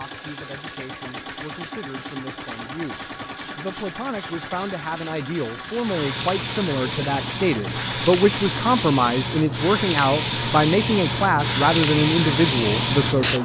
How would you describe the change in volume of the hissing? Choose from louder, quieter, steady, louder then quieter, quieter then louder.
louder.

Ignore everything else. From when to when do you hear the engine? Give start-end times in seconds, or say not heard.
0.0-8.8.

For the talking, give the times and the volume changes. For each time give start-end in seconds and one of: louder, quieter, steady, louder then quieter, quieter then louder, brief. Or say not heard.
0.0-13.4 louder.